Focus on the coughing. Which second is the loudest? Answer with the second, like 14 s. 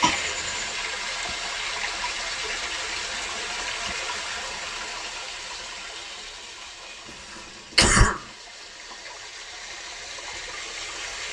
8 s.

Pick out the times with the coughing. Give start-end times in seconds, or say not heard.
0.0-0.8, 7.3-8.2.